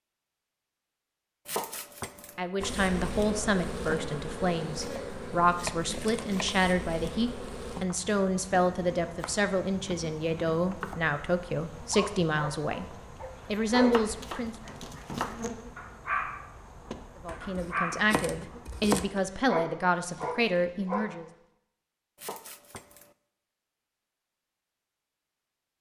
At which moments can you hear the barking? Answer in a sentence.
You can hear the barking from 11.9 to 21.1 s.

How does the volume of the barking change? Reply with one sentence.
The volume of the barking goes down, then up.